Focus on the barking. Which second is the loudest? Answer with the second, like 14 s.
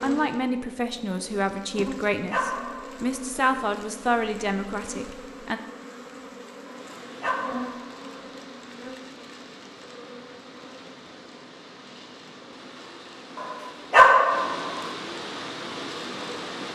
14 s.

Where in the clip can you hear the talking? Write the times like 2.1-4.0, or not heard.
0.0-5.6.